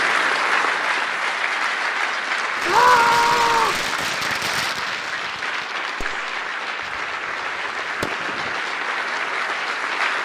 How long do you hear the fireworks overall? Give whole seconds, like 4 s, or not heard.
6 s.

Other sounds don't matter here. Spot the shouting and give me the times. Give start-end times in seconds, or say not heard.
2.6-3.9.